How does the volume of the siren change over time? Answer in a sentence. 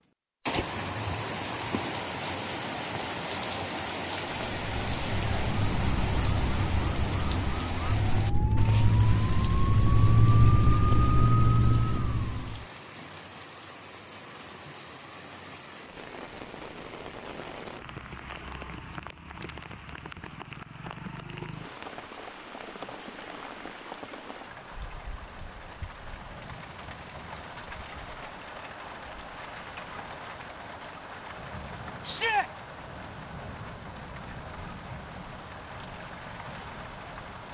The loudness of the siren goes up.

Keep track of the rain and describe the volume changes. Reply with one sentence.
The loudness of the rain goes down.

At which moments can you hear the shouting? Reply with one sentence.
You can hear the shouting from 32.0 to 32.5 s.